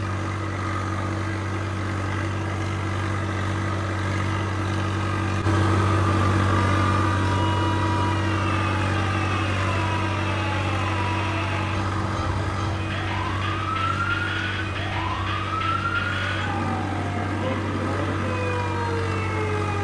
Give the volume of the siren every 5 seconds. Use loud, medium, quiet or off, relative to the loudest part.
off, loud, loud, loud.